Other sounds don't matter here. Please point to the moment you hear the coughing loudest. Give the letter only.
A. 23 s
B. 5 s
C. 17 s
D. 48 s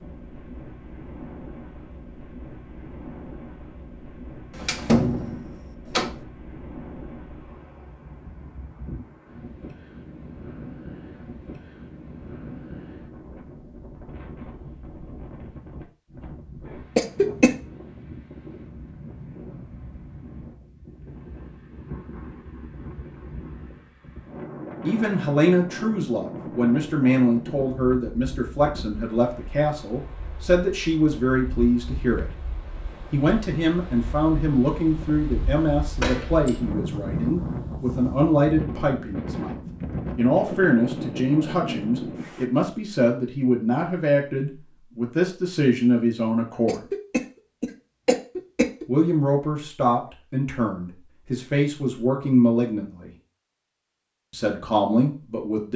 C.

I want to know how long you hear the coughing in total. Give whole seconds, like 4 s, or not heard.
3 s.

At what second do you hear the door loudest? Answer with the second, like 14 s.
5 s.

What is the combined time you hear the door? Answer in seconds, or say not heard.
2 s.